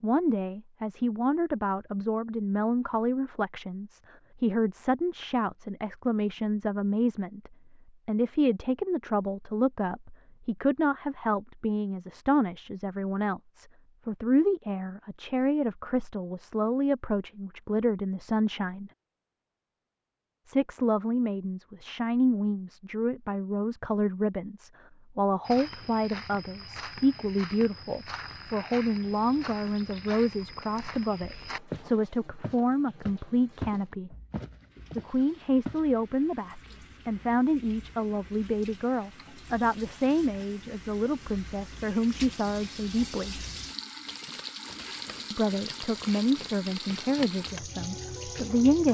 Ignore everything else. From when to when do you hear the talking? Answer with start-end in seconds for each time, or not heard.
0.0-18.9, 20.4-34.1, 35.0-43.4, 45.3-48.8.